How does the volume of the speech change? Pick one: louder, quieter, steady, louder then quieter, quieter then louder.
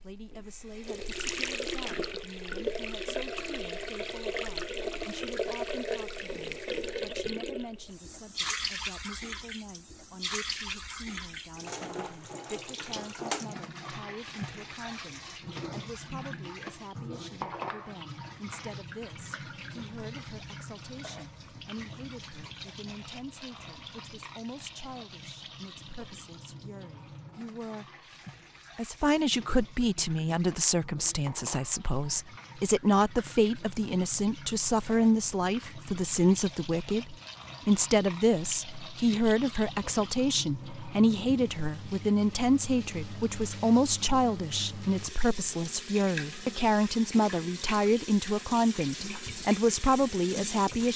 louder.